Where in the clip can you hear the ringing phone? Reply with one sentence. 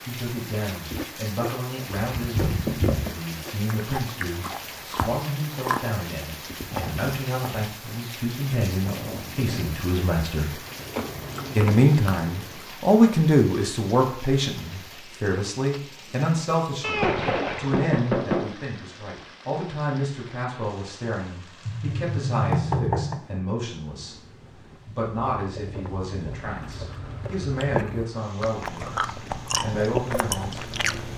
The ringing phone can't be heard in this clip.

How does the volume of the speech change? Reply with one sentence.
The loudness of the speech goes up, then down.